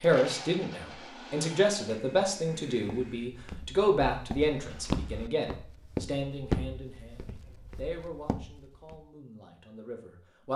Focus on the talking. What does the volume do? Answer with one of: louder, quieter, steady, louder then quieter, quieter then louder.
quieter.